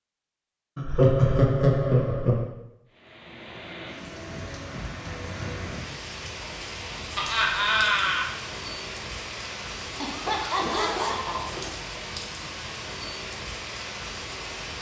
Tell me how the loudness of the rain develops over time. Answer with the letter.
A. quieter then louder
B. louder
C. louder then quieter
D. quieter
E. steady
E.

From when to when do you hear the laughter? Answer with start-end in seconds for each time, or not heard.
0.8-2.5, 7.2-8.2, 10.0-11.5.